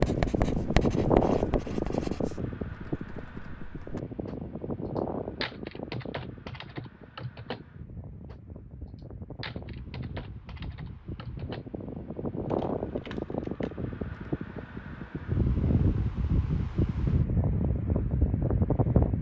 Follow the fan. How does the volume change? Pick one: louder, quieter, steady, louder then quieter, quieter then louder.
quieter then louder.